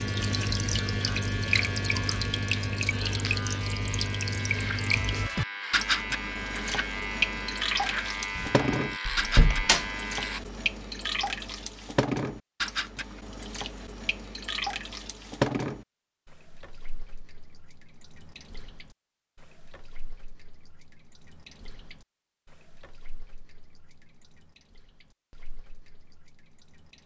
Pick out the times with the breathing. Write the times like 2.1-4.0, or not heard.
not heard.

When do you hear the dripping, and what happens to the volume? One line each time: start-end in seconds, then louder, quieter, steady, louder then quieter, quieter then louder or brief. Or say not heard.
0.0-27.0 quieter.